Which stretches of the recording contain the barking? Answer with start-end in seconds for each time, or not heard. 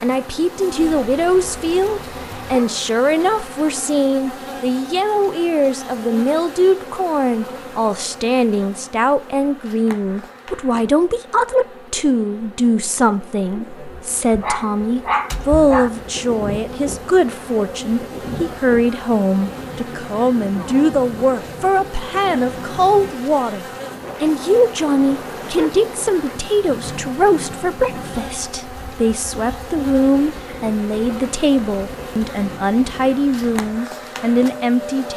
0.8-2.8, 13.9-15.9, 25.4-25.8.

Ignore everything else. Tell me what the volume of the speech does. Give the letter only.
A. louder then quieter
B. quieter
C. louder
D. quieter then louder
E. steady
E.